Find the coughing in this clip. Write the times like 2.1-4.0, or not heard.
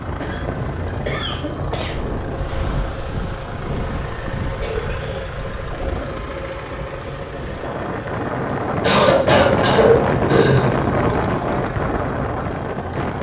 0.2-2.1, 4.6-5.3, 8.8-10.8.